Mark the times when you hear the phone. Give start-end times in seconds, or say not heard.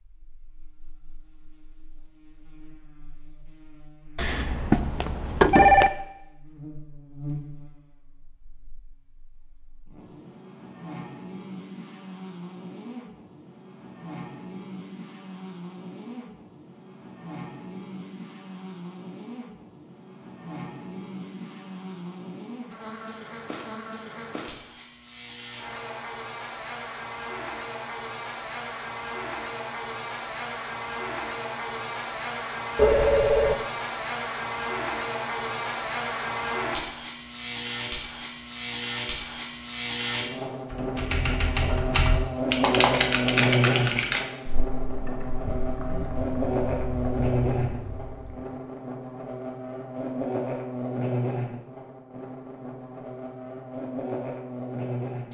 4.2-5.9, 32.8-33.6.